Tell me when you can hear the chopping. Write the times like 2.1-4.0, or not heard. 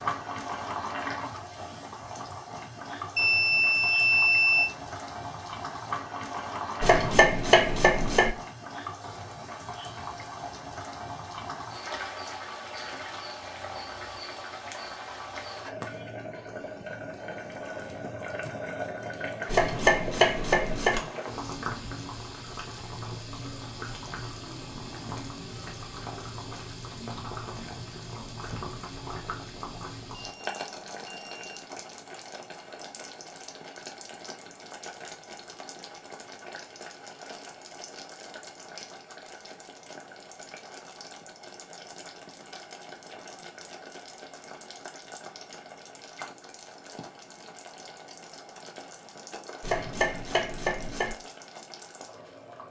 6.8-8.3, 19.4-21.0, 49.6-51.1.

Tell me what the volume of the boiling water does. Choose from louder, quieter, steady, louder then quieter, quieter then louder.
quieter.